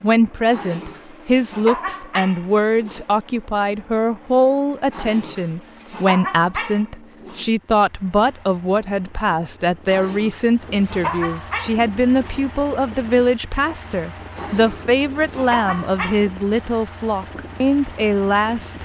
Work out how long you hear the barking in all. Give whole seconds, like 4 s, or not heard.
10 s.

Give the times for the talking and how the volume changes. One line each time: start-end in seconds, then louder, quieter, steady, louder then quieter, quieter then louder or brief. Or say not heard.
0.0-18.8 steady.